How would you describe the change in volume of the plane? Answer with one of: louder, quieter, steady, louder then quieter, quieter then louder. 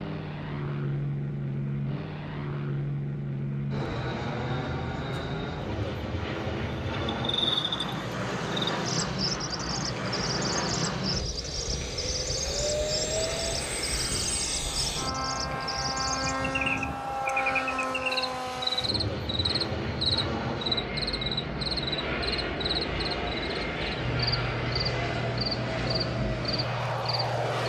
steady.